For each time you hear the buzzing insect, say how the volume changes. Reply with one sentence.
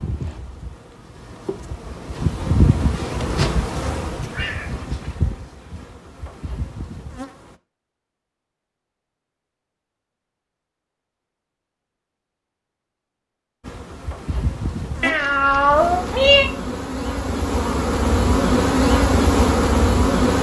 You can hear the buzzing insect from 0.0 to 7.5 s, getting louder then quieter; and from 13.6 to 20.3 s, getting louder.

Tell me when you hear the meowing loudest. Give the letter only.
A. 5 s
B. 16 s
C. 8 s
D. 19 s
B.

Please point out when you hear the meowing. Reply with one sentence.
You can hear the meowing from 4.3 to 5.2 s and from 15.0 to 16.5 s.